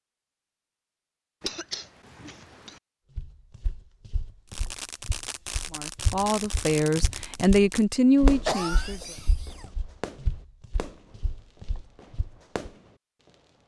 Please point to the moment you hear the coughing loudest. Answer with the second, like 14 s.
9 s.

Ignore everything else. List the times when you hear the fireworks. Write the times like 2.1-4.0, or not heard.
4.5-13.6.